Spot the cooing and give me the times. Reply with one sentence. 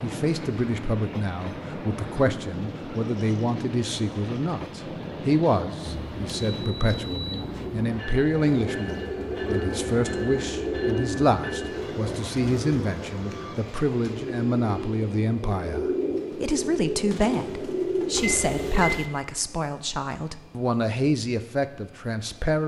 You can hear the cooing from 8.4 to 19.0 s.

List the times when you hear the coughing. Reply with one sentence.
The coughing can't be heard in this clip.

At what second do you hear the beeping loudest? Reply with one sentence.
The volume of the beeping peaks at 19 seconds.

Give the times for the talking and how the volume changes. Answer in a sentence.
You can hear the talking from 0.0 to 22.6 s, at a steady volume.